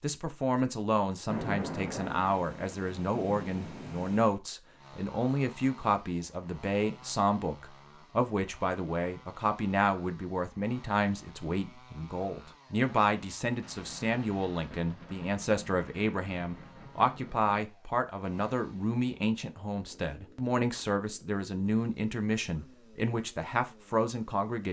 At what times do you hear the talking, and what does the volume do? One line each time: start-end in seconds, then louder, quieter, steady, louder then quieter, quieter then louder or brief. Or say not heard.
0.0-24.6 steady.